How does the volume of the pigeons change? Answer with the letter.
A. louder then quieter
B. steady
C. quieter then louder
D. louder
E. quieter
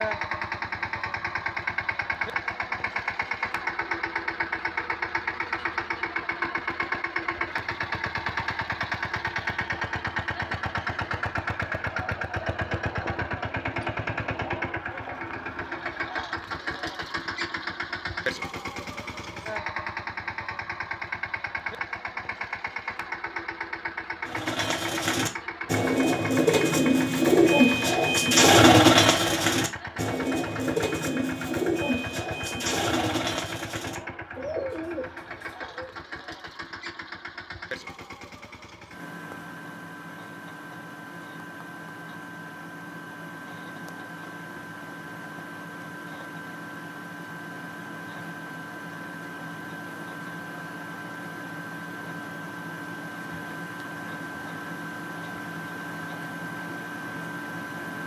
A.